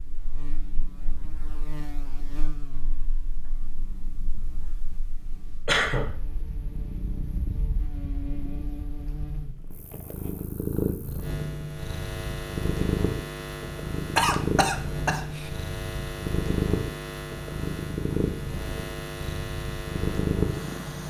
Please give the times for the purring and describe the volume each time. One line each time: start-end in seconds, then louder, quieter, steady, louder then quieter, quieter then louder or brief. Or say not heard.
0.0-21.0 louder.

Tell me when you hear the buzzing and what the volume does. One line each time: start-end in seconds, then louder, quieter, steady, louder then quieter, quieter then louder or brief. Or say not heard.
0.0-21.0 louder.